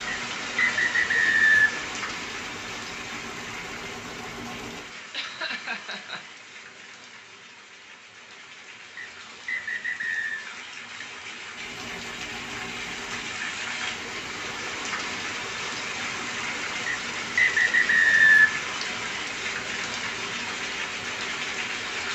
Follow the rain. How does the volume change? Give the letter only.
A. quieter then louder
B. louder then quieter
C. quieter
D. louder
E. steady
A.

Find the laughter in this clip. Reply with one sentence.
The laughter can be heard from 5.1 to 6.3 s.